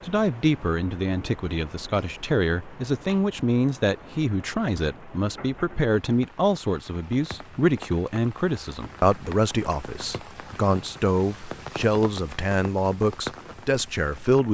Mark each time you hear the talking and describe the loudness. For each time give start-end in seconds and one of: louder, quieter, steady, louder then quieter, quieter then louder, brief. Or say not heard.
0.0-14.5 steady.